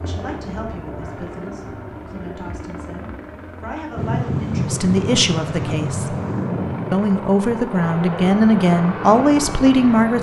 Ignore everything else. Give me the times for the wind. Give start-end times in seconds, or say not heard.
4.0-10.1.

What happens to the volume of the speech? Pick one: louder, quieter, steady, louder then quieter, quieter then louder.
louder.